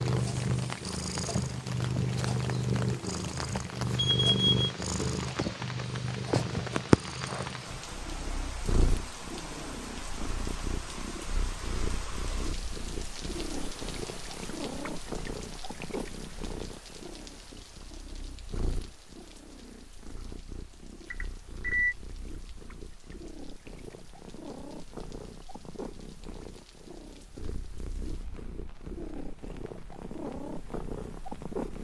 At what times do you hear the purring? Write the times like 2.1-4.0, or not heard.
0.0-31.8.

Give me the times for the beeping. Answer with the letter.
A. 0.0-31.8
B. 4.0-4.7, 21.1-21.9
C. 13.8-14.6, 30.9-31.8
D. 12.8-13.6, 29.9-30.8
B.